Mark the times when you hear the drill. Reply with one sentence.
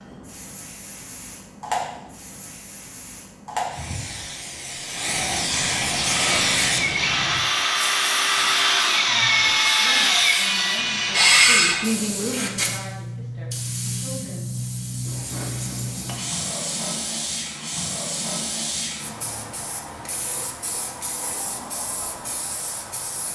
The drill can be heard from 5.9 to 11.8 s.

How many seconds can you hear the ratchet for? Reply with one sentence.
You can't hear the ratchet here.